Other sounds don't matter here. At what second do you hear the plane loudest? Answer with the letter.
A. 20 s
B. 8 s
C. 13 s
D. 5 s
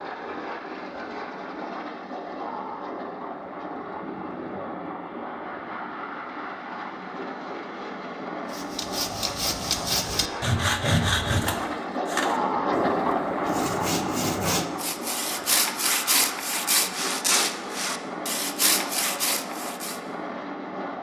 C.